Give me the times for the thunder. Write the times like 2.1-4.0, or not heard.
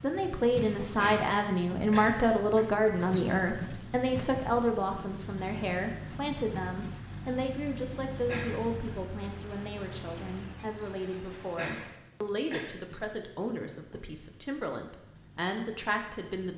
not heard.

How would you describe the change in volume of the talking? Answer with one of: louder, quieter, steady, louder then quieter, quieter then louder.
quieter.